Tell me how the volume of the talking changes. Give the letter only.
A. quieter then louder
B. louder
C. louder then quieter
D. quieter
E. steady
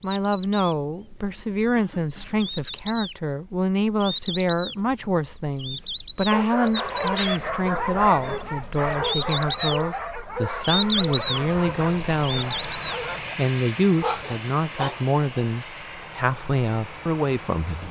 E.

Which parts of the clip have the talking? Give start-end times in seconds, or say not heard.
0.0-12.7, 13.3-17.8.